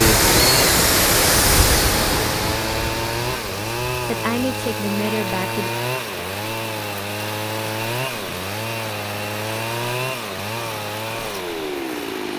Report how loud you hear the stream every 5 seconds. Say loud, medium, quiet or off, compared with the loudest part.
loud, quiet, quiet.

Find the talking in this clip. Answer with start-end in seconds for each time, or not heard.
4.0-5.7.